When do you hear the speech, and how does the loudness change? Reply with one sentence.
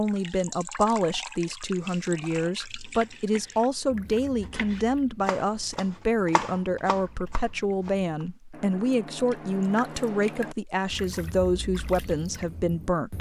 The speech can be heard from 0.0 to 13.1 s, at a steady volume.